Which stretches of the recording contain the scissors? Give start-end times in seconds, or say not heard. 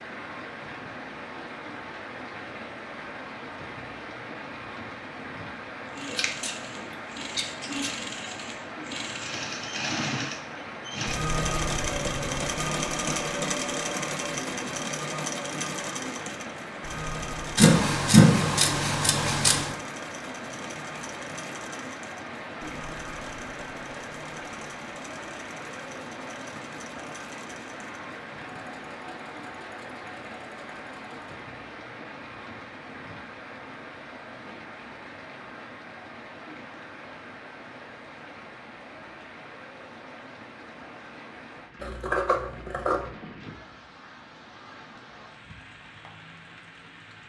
6.1-6.5, 7.3-7.9, 17.6-19.8, 41.8-43.0.